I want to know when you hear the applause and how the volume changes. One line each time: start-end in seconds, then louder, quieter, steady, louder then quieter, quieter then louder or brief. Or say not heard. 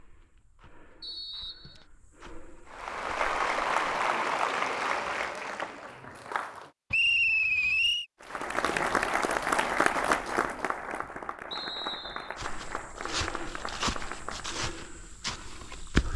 2.6-6.7 quieter
8.2-14.7 quieter.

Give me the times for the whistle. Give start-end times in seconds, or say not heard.
1.0-1.9, 6.9-8.1, 11.5-12.3.